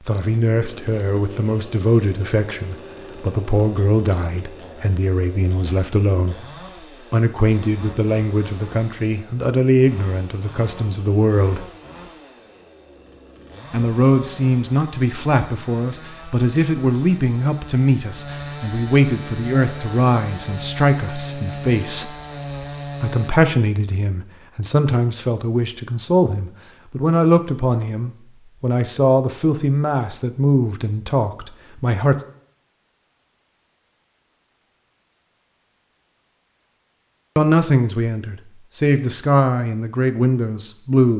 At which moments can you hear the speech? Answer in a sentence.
The speech can be heard from 0.0 to 6.5 s, from 7.1 to 11.7 s, from 13.7 to 22.1 s, from 23.0 to 32.1 s and from 37.4 to 41.1 s.